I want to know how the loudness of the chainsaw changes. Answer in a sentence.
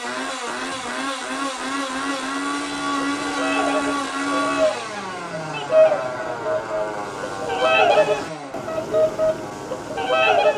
The volume of the chainsaw goes down.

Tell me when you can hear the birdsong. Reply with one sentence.
The birdsong can be heard from 2.7 to 10.5 s.